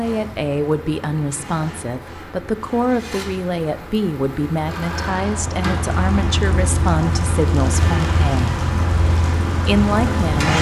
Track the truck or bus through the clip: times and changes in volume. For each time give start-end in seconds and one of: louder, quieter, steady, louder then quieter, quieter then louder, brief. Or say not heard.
0.0-10.5 louder.